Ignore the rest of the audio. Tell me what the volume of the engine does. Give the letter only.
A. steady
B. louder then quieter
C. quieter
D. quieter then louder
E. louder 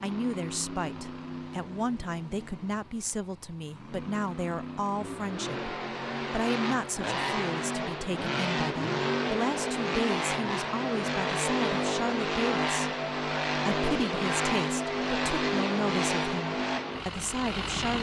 E.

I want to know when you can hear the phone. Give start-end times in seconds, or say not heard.
not heard.